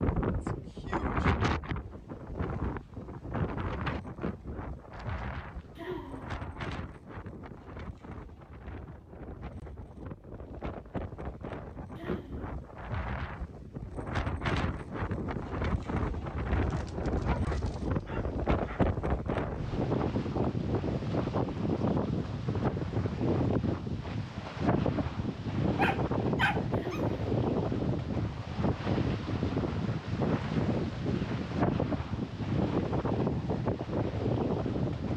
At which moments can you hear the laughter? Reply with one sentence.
You can hear the laughter from 5.8 to 6.3 s, from 11.9 to 12.5 s and from 26.7 to 27.1 s.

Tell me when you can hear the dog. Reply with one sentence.
The dog can be heard from 4.9 to 6.7 s, from 16.5 to 18.9 s and from 25.6 to 27.1 s.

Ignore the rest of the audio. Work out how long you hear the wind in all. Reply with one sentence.
The wind can be heard for 35 seconds in total.